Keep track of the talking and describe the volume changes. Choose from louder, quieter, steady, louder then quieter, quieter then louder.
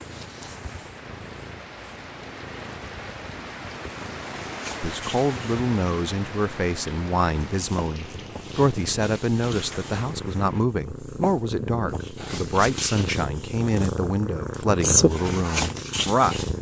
steady.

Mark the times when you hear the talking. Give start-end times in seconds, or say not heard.
4.8-16.4.